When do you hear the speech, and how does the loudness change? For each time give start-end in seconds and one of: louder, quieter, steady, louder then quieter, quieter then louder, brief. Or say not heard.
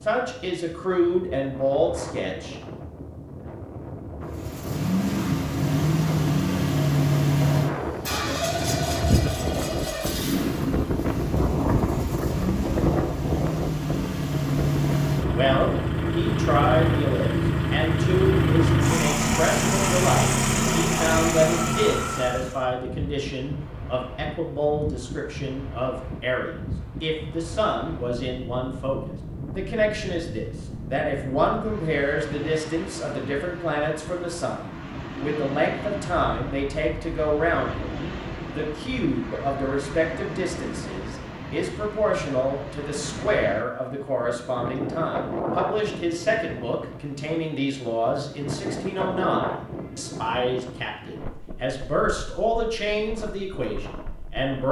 0.0-2.5 brief
15.3-54.6 steady.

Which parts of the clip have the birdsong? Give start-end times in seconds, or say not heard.
not heard.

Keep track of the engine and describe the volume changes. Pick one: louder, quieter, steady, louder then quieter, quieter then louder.
quieter then louder.